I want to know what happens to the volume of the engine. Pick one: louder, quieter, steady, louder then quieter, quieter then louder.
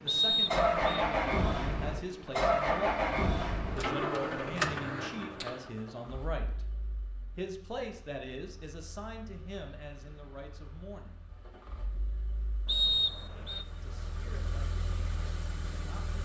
quieter then louder.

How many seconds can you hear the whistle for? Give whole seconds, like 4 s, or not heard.
2 s.